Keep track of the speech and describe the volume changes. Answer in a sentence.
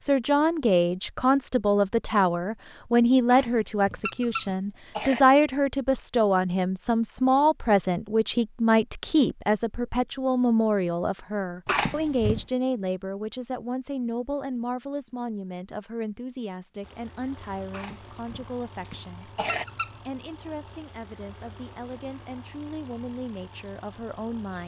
The loudness of the speech goes down.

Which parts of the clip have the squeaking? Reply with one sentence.
You can hear the squeaking from 4.0 to 4.5 s and from 19.4 to 19.9 s.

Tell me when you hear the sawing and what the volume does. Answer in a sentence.
You can't hear the sawing here.